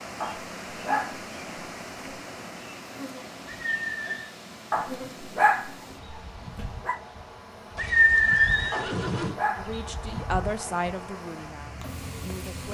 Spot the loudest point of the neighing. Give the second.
8 s.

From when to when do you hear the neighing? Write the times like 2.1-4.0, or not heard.
3.5-4.3, 7.8-9.3.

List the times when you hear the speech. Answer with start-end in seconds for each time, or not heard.
9.6-12.6.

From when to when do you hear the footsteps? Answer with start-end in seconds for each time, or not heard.
not heard.